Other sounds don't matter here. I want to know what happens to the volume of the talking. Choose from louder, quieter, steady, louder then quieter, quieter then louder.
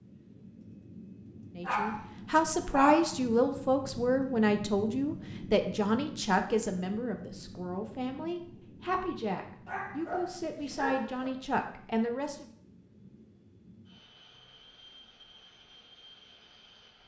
quieter.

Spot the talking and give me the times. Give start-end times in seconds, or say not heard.
1.6-12.4.